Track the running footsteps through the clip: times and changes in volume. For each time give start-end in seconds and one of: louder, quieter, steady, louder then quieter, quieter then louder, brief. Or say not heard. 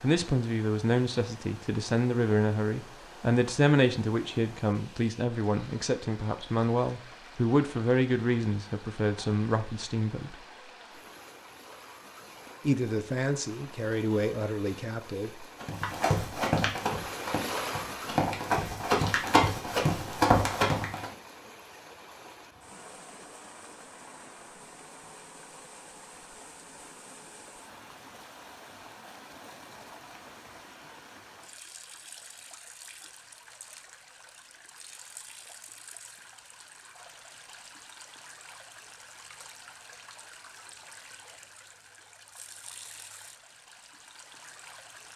15.6-21.1 quieter then louder.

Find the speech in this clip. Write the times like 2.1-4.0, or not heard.
0.0-10.3, 12.7-15.4.